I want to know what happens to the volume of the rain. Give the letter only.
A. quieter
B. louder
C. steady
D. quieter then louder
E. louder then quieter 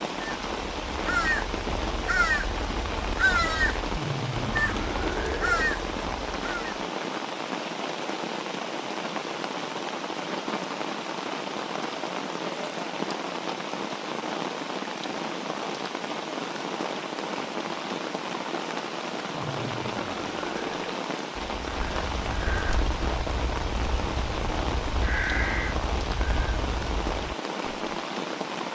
C.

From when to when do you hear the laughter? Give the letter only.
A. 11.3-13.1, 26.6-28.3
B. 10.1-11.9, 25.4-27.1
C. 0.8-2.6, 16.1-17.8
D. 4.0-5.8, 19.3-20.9
D.